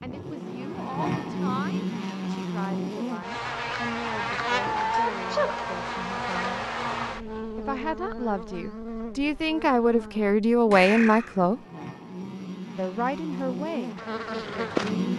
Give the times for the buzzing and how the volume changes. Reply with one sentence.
You can hear the buzzing from 0.0 to 15.1 s, getting quieter then louder.